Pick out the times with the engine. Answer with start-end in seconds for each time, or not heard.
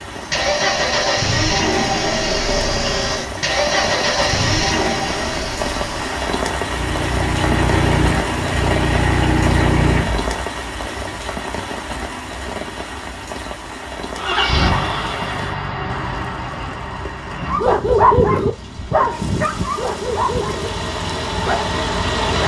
0.0-10.3, 14.2-22.4.